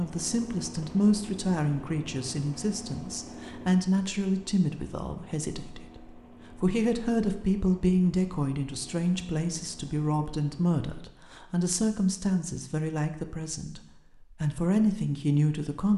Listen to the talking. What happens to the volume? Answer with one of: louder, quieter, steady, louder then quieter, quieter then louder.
steady.